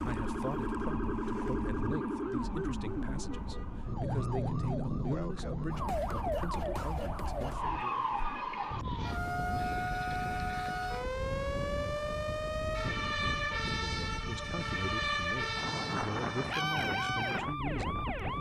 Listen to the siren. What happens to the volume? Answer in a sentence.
The volume of the siren stays about the same.